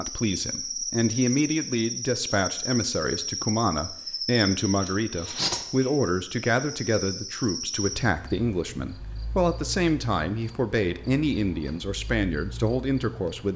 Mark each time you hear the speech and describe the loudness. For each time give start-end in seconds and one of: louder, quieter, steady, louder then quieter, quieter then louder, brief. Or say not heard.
0.0-13.5 steady.